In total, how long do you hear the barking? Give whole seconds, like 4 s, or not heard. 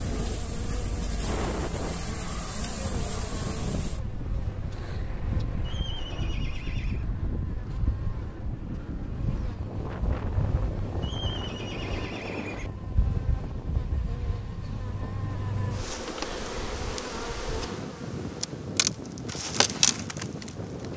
not heard.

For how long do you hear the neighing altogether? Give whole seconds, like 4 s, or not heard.
3 s.